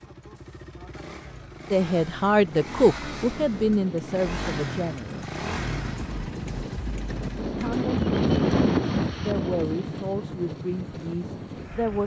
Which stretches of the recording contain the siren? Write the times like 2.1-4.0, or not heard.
not heard.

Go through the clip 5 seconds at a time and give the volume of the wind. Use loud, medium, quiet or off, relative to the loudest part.
quiet, loud, quiet.